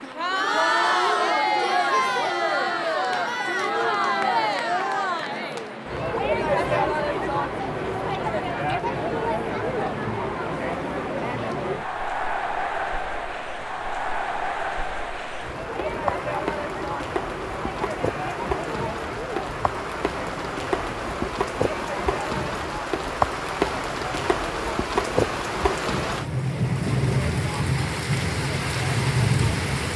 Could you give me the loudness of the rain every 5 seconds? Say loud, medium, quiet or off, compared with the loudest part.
quiet, quiet, quiet, medium, loud, loud.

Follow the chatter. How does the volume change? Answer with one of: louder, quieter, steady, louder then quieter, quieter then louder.
quieter.